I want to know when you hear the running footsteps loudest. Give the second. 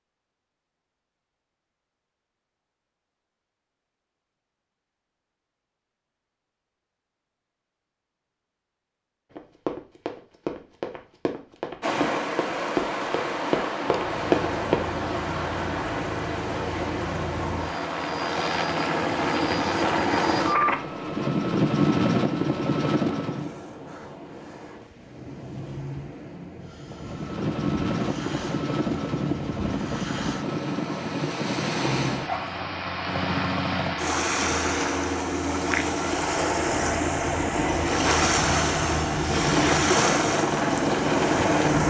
14 s.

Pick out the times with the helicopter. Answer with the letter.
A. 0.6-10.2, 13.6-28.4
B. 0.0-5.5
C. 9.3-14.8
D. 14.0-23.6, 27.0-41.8
D.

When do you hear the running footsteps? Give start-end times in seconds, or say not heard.
9.3-14.8.